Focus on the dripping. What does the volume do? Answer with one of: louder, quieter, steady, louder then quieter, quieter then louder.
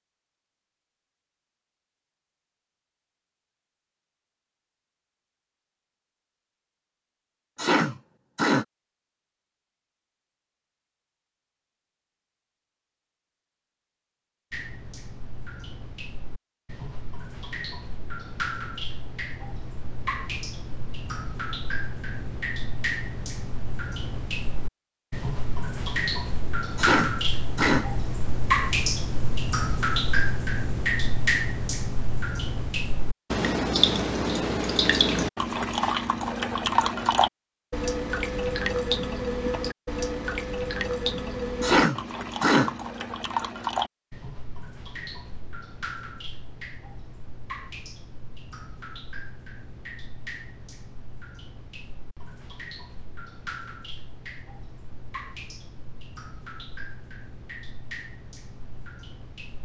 louder then quieter.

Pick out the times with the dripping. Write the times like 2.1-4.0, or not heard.
14.5-59.6.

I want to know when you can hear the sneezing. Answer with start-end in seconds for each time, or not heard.
7.5-8.7, 26.8-27.9, 41.6-42.8.